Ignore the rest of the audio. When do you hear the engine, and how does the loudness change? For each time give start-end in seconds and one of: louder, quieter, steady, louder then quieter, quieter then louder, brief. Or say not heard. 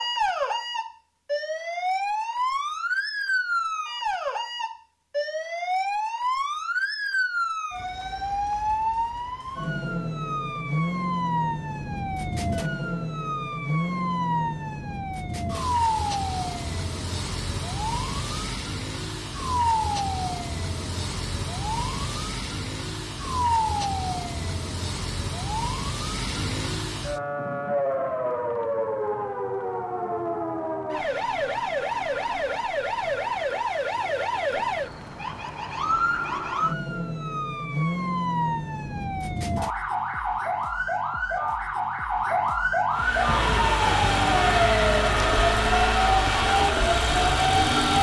42.9-47.9 steady.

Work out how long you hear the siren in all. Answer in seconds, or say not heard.
48 s.